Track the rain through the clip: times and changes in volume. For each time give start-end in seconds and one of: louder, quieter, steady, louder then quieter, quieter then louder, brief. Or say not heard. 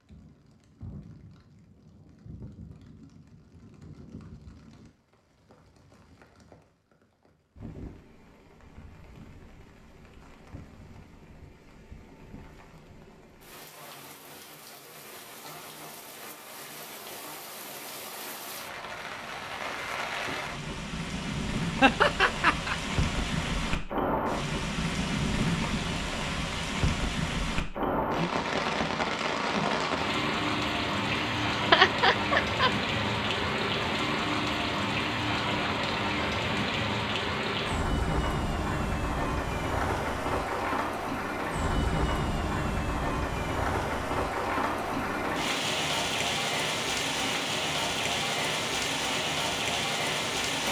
0.0-50.6 louder.